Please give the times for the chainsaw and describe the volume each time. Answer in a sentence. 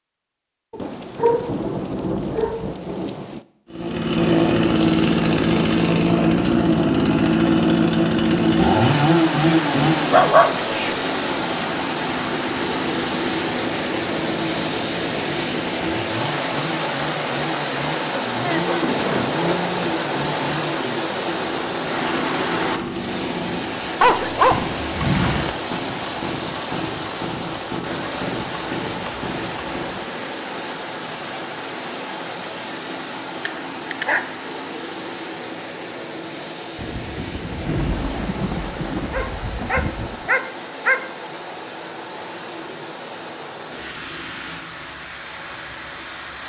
You can hear the chainsaw from 3.7 to 30.1 s, getting quieter.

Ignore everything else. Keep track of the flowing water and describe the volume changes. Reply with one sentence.
The loudness of the flowing water goes down.